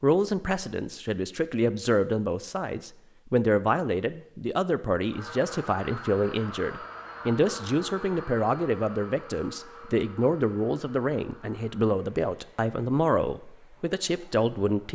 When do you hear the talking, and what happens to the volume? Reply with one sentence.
You can hear the talking from 0.0 to 14.8 s, at a steady volume.